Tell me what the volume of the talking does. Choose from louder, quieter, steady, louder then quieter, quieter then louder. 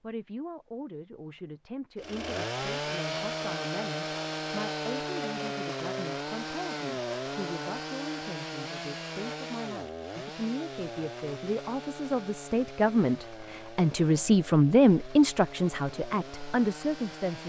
louder.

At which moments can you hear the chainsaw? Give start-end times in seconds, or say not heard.
1.9-17.4.